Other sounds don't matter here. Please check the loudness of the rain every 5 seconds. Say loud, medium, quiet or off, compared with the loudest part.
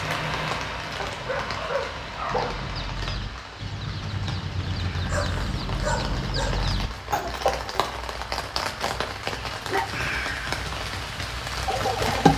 medium, loud, loud.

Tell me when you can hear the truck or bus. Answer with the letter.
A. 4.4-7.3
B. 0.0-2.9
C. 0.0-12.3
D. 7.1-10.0
B.